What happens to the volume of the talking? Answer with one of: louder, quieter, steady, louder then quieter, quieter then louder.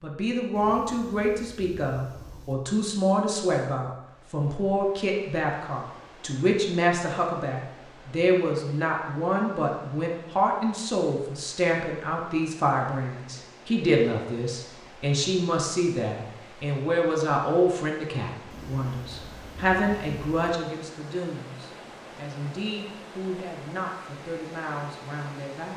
quieter.